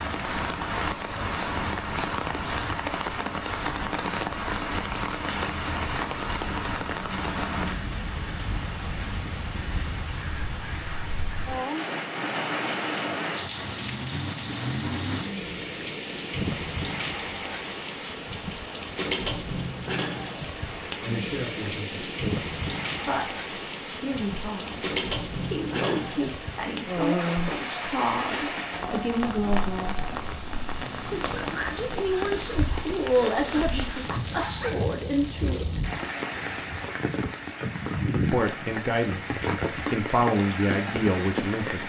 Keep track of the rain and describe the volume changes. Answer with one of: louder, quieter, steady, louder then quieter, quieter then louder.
steady.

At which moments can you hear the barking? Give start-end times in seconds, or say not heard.
33.5-34.9.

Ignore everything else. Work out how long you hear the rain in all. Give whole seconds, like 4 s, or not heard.
42 s.